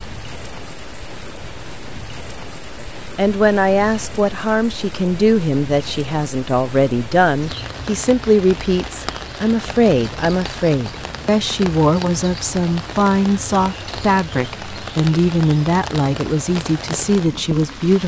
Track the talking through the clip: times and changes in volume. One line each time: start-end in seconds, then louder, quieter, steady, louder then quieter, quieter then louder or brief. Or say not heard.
2.8-18.0 steady.